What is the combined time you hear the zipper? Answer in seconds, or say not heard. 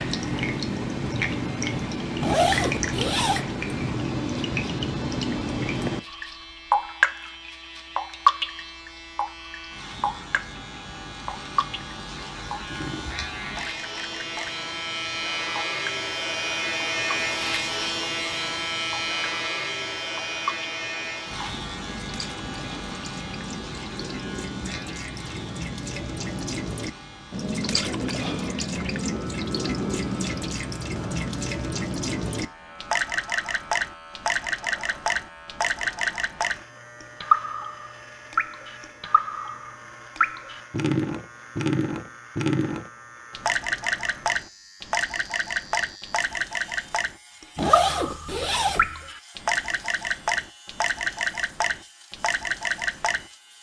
3 s.